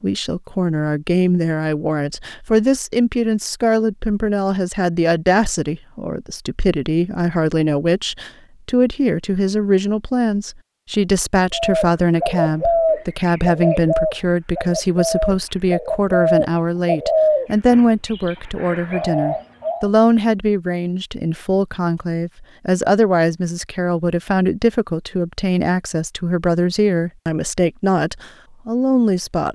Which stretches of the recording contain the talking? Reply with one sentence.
You can hear the talking from 0.0 to 29.5 s.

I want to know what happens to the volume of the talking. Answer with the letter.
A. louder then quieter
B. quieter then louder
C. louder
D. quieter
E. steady
E.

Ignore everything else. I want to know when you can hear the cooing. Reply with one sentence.
The cooing can be heard from 11.5 to 19.9 s.